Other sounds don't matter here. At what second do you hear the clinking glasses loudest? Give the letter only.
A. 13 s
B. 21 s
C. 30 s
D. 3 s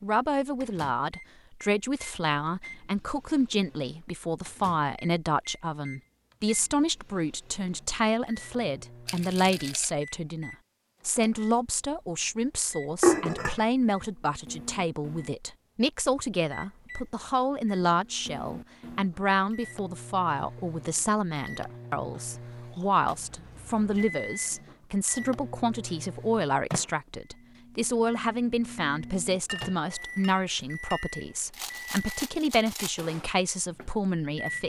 A.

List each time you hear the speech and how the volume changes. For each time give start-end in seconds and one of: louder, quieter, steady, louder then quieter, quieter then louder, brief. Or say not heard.
0.0-34.6 steady.